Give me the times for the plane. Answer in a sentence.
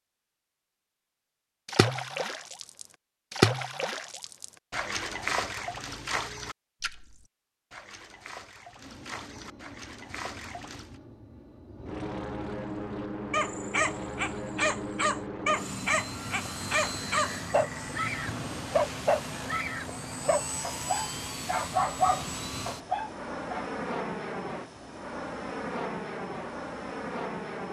You can hear the plane from 8.8 to 27.6 s.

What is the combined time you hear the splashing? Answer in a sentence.
The splashing can be heard for 9 seconds in total.